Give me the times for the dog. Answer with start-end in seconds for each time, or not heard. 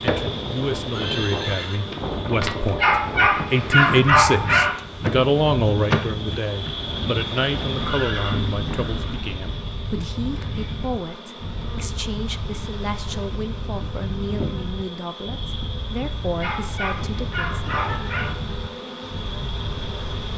2.8-4.7, 16.4-18.3.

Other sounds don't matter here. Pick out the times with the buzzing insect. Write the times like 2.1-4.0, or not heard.
0.0-20.3.